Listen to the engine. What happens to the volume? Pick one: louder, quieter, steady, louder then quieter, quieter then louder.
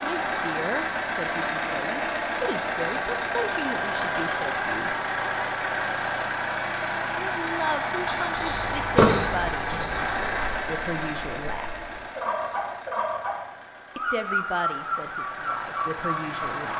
quieter.